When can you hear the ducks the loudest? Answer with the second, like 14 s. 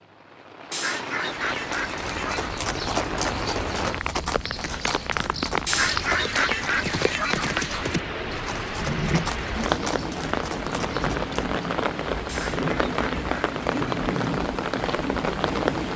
6 s.